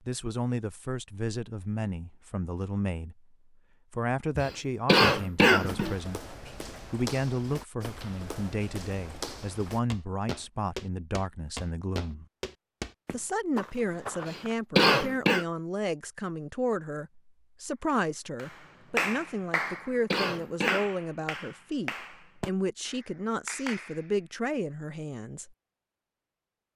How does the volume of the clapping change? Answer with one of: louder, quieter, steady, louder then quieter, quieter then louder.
quieter.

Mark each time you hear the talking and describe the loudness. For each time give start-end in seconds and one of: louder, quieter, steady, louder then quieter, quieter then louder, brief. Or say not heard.
0.1-12.2 steady
13.1-25.5 steady.